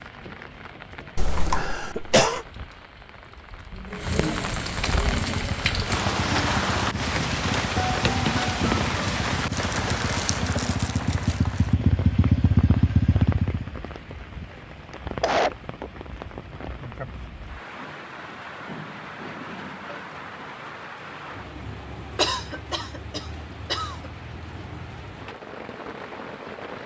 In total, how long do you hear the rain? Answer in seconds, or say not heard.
27 s.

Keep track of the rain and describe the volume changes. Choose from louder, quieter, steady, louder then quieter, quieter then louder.
louder then quieter.